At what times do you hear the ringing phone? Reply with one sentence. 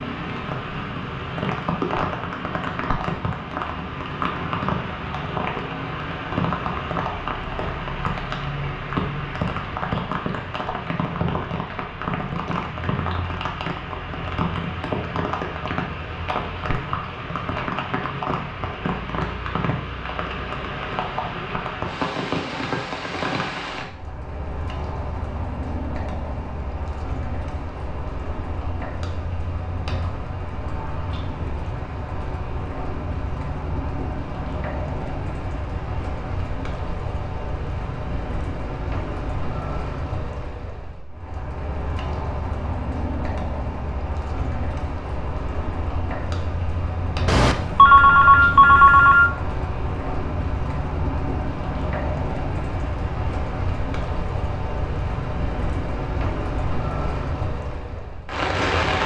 You can hear the ringing phone from 47.2 to 49.3 s.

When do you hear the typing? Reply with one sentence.
You can't hear the typing here.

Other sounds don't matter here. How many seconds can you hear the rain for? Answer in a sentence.
The rain can be heard for 59 seconds in total.